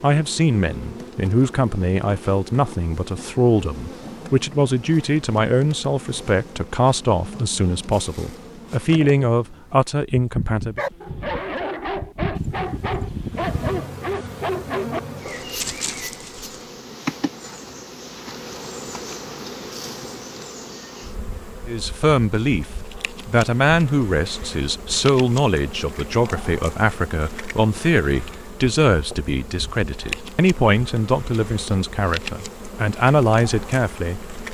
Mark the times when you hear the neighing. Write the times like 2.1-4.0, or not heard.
12.3-13.8.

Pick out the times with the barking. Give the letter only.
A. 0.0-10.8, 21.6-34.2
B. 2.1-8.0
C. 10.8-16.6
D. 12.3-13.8
C.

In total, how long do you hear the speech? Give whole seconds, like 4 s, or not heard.
23 s.